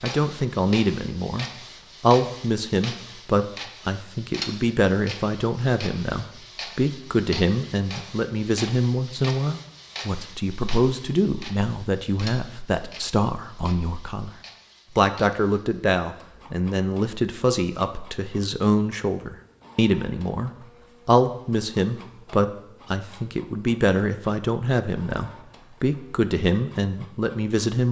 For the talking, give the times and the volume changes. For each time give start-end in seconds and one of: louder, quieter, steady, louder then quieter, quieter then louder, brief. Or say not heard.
0.0-27.8 steady.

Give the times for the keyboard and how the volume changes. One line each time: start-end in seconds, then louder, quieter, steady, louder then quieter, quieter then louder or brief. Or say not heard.
not heard.